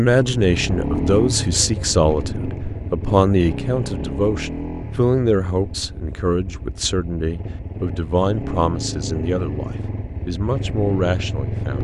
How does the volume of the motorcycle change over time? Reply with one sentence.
The loudness of the motorcycle goes down, then up.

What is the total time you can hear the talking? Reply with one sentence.
You can hear the talking for 12 seconds altogether.